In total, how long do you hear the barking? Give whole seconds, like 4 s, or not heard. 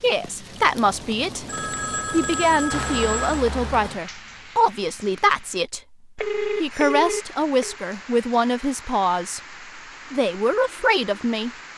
not heard.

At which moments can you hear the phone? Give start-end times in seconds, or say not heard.
1.4-3.4, 6.2-7.8.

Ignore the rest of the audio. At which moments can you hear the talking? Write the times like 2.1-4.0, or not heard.
0.0-1.4, 2.1-5.8, 6.5-9.4, 10.1-11.5.